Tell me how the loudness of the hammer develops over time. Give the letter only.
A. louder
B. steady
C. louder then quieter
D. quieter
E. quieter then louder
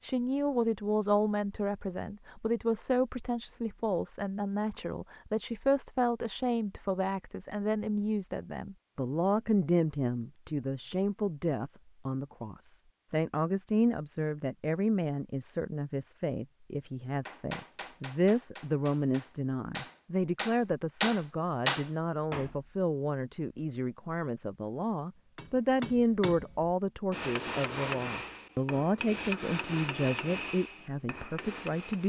C.